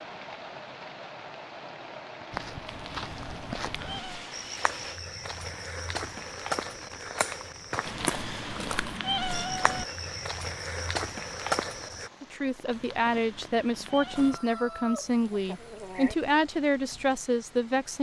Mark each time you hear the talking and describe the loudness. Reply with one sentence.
The talking can be heard from 12.2 to 17.9 s, at a steady volume.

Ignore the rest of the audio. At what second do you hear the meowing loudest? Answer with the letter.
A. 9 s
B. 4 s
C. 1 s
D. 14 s
A.